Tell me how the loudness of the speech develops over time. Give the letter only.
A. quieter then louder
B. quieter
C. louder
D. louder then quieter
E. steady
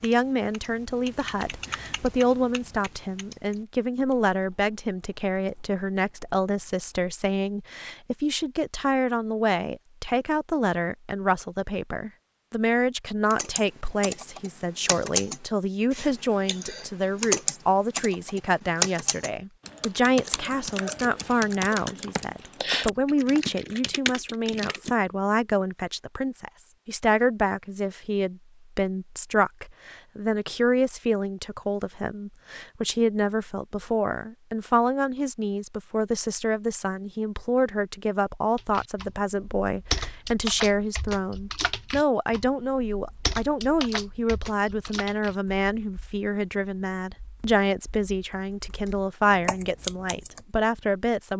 E.